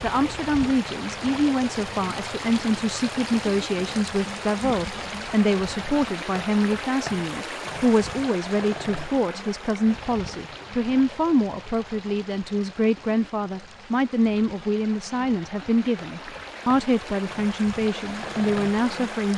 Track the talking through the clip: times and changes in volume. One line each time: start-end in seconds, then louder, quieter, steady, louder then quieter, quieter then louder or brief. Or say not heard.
0.0-19.3 steady.